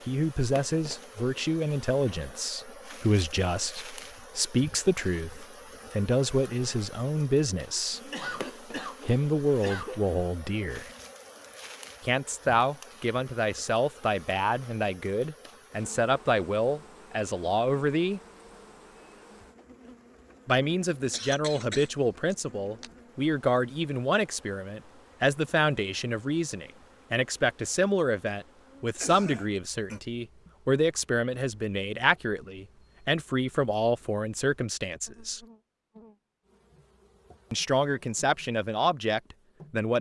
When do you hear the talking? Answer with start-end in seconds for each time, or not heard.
0.1-8.1, 9.1-10.9, 12.1-18.2, 20.4-35.4, 37.5-39.9.